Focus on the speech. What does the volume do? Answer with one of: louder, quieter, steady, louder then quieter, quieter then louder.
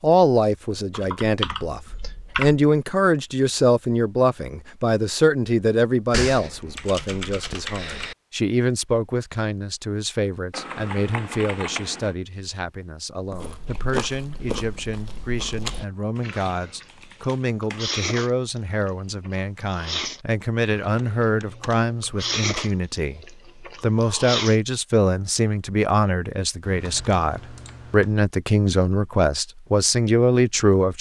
quieter then louder.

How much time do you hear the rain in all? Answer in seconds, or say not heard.
not heard.